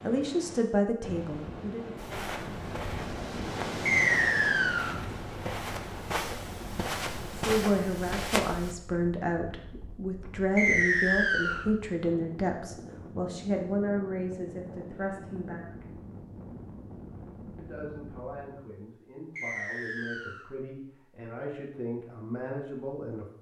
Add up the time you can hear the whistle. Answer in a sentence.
You can hear the whistle for 3 seconds altogether.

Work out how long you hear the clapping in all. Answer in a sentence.
The clapping can't be heard in this clip.